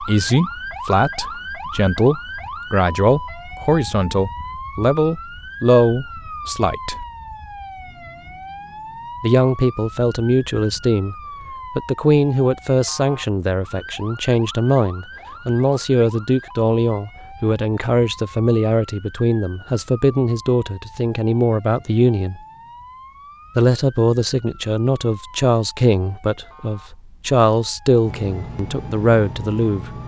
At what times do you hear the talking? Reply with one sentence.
You can hear the talking from 0.0 to 7.0 s, from 9.2 to 11.2 s, from 11.8 to 22.4 s and from 23.6 to 30.0 s.